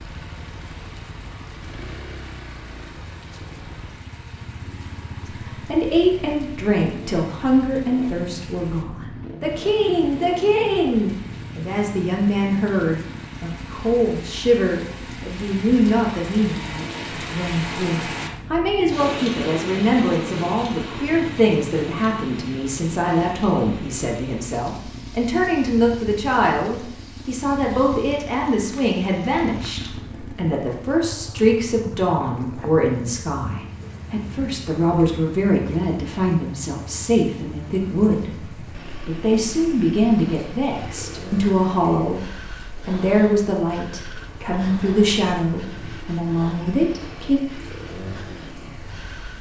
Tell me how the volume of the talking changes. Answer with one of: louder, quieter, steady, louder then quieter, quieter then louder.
steady.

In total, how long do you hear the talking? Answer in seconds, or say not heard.
41 s.